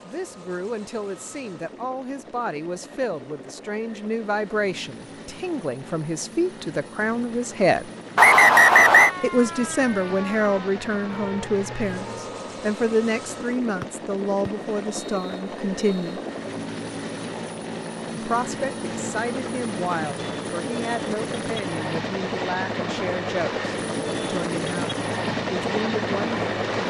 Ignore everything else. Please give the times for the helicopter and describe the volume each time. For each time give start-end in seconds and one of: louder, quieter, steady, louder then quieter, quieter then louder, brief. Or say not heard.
0.0-26.8 louder.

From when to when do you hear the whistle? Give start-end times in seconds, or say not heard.
8.2-9.1, 13.8-16.2.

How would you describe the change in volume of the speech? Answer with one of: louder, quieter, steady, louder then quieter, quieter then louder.
louder then quieter.